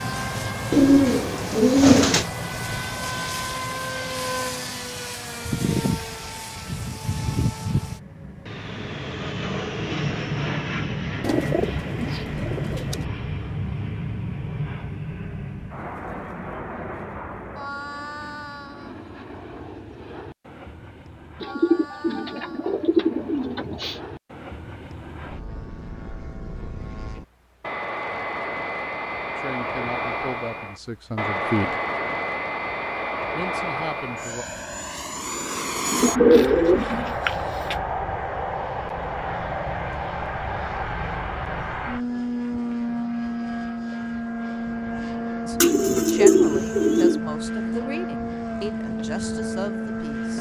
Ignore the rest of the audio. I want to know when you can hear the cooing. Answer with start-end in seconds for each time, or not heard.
0.7-2.2, 11.2-13.1, 21.4-24.0, 35.9-37.8, 45.6-47.2.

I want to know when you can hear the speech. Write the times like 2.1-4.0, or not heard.
29.4-31.8, 33.4-34.5, 45.5-50.3.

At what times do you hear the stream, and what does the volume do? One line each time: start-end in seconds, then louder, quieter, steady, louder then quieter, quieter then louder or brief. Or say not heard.
not heard.